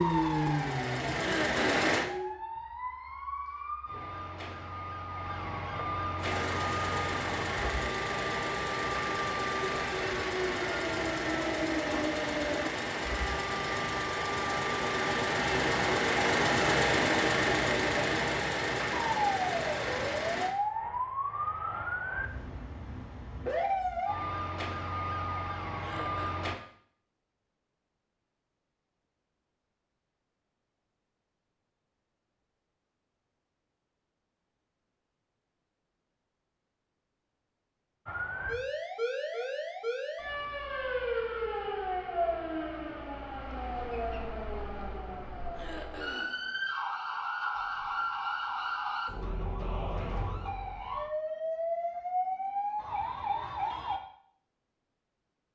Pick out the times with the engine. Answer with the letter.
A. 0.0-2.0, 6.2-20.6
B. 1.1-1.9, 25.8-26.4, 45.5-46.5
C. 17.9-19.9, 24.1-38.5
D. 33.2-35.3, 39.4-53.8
A.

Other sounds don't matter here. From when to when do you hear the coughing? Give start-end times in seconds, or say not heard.
1.1-1.9, 25.8-26.4, 45.5-46.5.